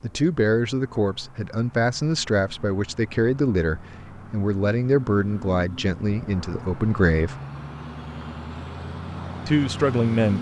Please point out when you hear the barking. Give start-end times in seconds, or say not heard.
not heard.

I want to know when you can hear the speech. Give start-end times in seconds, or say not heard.
0.0-7.3, 9.4-10.3.